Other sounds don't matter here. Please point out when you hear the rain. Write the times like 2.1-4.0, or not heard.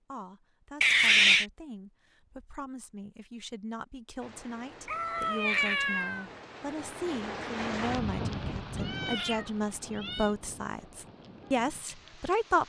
4.2-12.6.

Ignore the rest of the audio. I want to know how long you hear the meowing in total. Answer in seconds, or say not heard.
4 s.